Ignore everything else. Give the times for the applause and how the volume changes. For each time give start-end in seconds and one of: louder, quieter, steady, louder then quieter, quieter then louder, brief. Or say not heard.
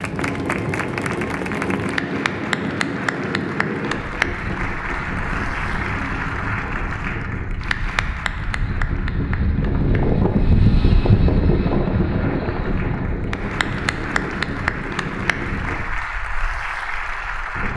0.0-17.7 quieter then louder.